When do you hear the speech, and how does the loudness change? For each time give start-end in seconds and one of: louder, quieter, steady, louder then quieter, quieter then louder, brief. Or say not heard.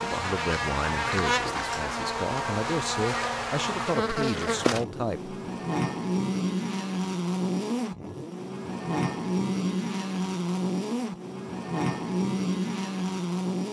0.0-5.3 quieter then louder.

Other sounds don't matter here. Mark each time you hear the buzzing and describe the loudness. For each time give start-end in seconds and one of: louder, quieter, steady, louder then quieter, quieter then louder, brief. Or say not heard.
0.0-13.6 steady.